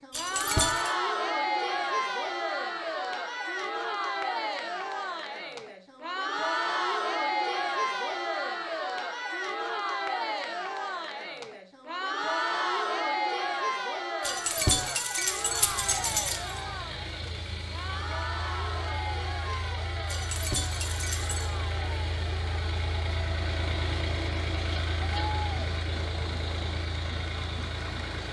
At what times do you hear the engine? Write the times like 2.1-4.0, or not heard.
15.2-28.2.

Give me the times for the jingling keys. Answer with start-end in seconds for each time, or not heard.
0.1-0.9, 14.2-16.4, 20.1-21.5.